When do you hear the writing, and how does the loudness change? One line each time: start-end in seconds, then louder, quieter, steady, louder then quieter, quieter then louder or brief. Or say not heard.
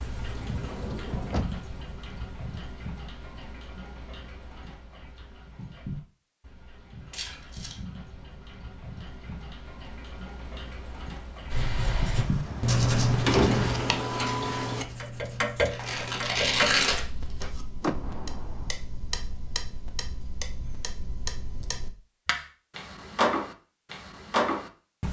11.5-16.8 quieter.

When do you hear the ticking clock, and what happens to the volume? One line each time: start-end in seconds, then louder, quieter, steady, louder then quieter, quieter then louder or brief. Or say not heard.
0.0-25.0 louder.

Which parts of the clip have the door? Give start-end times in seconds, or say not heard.
0.0-1.6, 12.2-13.8, 17.8-18.7.